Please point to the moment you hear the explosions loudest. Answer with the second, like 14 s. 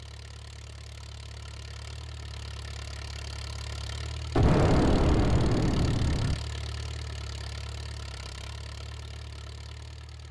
5 s.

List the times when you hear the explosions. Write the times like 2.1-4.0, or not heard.
4.3-6.3.